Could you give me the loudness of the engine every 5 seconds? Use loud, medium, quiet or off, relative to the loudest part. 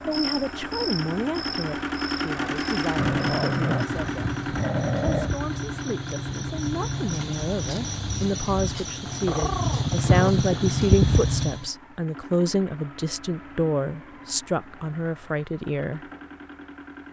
loud, medium, quiet, quiet.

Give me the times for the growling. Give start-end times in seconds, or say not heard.
3.0-5.3, 9.2-10.3.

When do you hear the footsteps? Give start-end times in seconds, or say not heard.
not heard.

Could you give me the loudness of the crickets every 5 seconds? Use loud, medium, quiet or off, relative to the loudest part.
quiet, medium, loud, off.